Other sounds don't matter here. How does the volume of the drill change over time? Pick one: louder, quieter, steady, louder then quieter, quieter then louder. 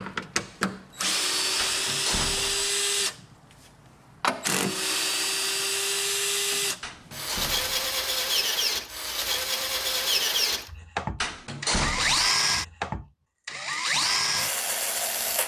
steady.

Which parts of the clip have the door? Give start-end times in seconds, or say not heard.
1.6-2.7, 6.8-7.9, 11.2-12.3.